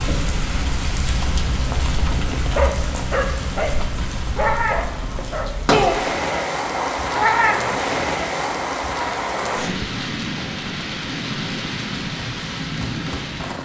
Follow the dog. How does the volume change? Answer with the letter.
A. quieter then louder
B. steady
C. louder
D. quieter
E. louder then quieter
D.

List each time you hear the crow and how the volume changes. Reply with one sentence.
You can't hear the crow here.